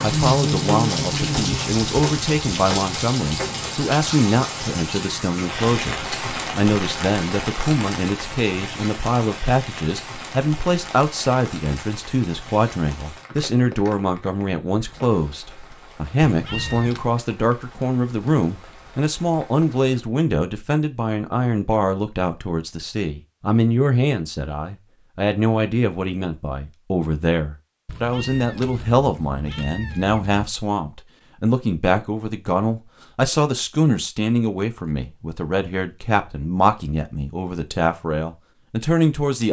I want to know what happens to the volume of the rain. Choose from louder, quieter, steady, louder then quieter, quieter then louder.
quieter.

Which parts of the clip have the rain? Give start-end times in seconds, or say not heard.
0.0-20.1.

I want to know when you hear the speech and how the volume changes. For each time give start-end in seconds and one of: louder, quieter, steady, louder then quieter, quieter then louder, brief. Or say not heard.
0.0-39.4 steady.